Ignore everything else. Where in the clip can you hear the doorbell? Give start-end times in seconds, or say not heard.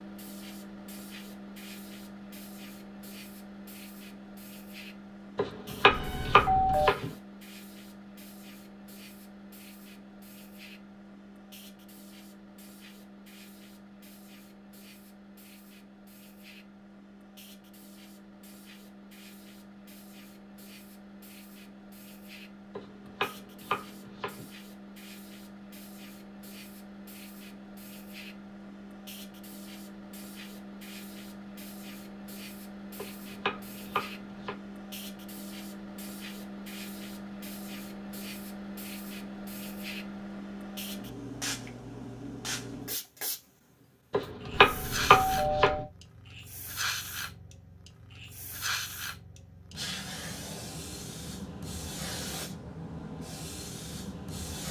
5.9-7.0, 44.5-45.9.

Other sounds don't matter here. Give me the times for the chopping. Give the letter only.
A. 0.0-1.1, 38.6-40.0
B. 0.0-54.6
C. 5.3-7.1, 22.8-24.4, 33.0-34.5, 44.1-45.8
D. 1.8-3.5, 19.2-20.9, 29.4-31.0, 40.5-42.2
C.